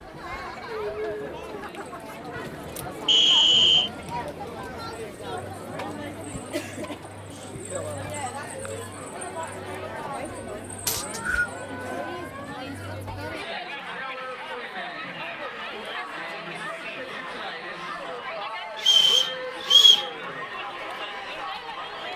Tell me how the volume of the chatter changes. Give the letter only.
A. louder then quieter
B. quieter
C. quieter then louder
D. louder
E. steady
E.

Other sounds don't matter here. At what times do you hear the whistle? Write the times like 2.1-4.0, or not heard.
3.0-3.9, 10.8-11.4, 18.9-20.1.